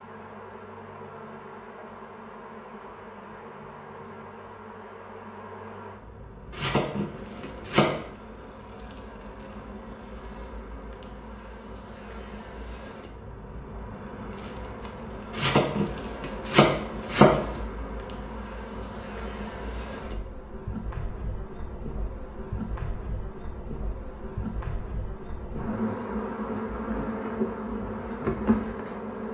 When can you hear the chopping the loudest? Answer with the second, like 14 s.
17 s.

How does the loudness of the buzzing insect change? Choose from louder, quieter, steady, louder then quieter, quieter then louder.
louder.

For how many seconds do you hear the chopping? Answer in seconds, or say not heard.
4 s.